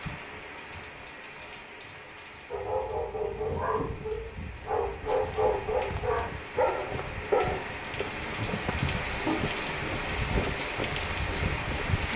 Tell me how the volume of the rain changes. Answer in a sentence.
The volume of the rain goes up.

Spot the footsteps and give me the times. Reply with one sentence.
You can hear the footsteps from 5.0 to 12.1 s.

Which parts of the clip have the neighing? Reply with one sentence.
The neighing can't be heard in this clip.